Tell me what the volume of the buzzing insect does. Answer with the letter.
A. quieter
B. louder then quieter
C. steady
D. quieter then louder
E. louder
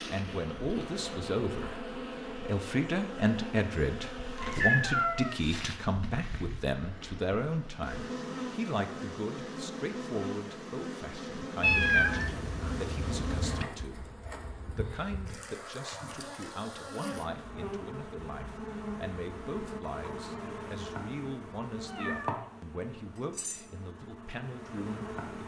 C.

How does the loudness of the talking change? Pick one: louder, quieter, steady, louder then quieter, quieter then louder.
quieter.